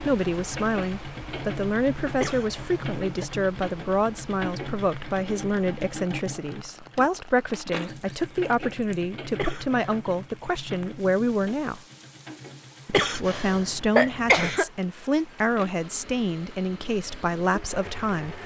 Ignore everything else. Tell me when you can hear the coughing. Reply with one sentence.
You can hear the coughing from 2.2 to 3.2 s, from 9.3 to 10.0 s and from 12.9 to 14.7 s.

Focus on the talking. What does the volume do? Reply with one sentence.
The loudness of the talking stays about the same.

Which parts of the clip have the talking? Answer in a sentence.
You can hear the talking from 0.1 to 11.8 s and from 13.0 to 18.4 s.